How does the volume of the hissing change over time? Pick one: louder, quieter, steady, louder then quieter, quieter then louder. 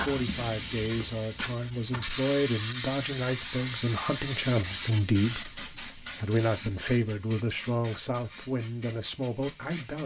quieter.